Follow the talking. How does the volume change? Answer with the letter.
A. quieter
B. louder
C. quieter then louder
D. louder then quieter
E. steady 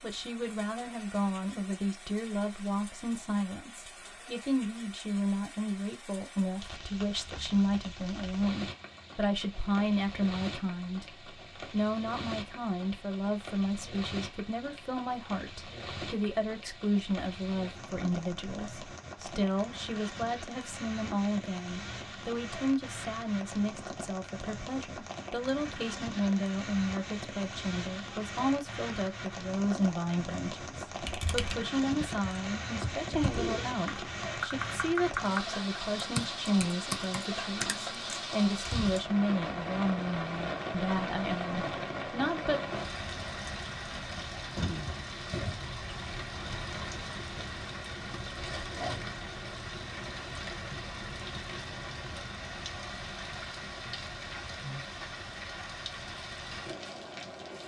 E.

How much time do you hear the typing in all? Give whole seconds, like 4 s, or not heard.
8 s.